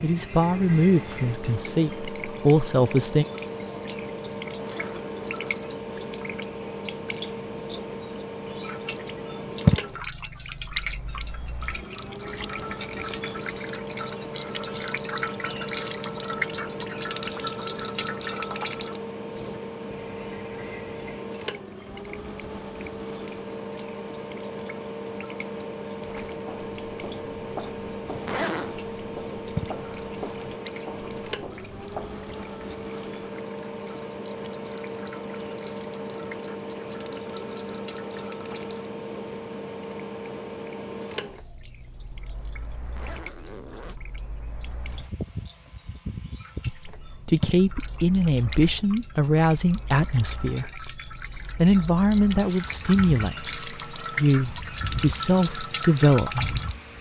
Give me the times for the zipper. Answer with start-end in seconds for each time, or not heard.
4.5-5.4, 28.1-28.8, 42.8-44.0.